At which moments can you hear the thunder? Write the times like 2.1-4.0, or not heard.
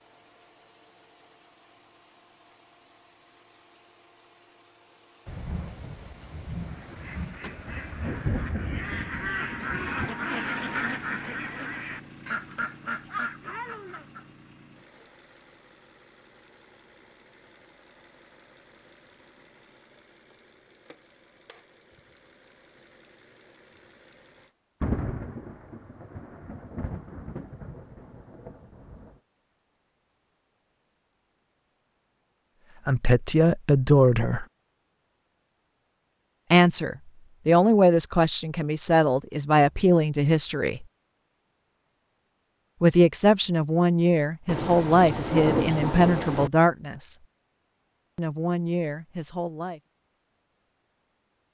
5.2-10.2, 24.8-29.1, 44.5-46.5.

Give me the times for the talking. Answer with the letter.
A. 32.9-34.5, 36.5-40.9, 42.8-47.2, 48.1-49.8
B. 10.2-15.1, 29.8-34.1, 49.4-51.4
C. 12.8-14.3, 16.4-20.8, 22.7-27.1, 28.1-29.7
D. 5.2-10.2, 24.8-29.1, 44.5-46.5
A.